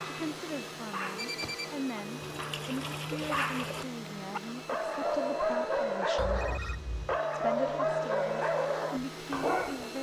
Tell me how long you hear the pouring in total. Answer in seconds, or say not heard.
2 s.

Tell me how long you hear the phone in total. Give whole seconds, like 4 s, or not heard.
2 s.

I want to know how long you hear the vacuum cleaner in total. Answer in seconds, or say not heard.
10 s.